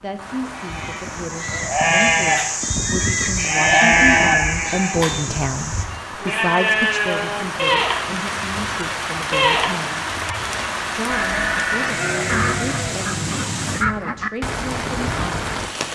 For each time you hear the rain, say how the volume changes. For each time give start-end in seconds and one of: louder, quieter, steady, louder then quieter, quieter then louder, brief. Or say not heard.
0.0-15.9 louder.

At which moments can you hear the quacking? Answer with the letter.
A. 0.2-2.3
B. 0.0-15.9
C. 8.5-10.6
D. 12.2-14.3
D.